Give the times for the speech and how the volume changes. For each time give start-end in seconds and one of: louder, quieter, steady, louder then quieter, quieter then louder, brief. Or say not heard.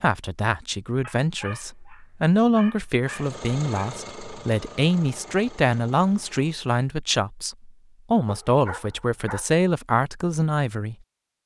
0.0-10.9 steady.